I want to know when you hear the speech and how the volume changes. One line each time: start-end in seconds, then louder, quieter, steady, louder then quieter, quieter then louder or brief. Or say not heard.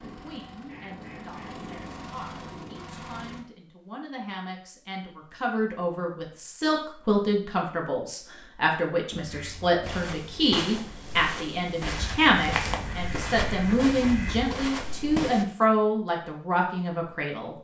0.1-17.5 louder.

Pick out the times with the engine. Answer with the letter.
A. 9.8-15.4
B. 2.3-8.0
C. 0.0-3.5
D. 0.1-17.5
C.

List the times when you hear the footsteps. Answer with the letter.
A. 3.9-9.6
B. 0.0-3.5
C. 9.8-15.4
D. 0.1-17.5
C.